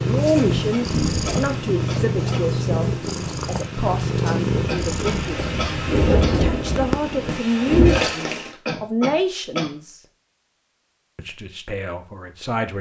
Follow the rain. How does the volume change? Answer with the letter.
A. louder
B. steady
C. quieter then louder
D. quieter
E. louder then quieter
C.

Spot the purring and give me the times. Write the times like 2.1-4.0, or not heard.
0.0-7.2.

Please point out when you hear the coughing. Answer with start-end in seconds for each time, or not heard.
0.3-2.5, 4.7-6.8, 8.7-9.7.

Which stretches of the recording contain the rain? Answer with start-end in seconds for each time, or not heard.
0.0-8.5.